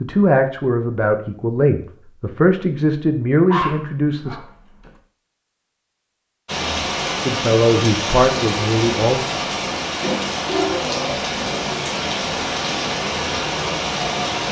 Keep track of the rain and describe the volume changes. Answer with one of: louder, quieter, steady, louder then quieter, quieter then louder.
steady.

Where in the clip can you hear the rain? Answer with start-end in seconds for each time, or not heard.
6.5-14.4.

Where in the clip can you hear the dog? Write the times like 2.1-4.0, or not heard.
3.5-4.9.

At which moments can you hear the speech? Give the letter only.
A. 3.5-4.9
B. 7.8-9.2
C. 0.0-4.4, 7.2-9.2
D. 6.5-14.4
C.